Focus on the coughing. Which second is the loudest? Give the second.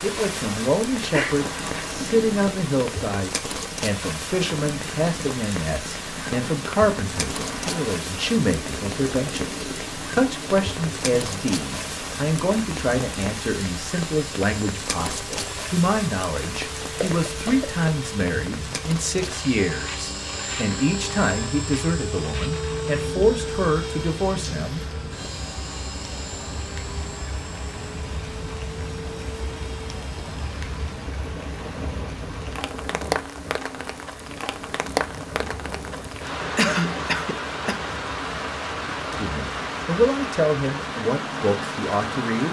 37 s.